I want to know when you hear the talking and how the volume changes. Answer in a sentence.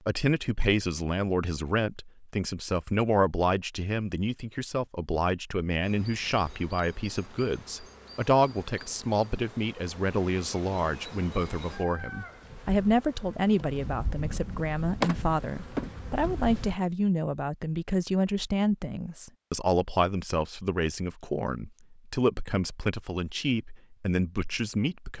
The talking can be heard from 0.1 to 25.1 s, at a steady volume.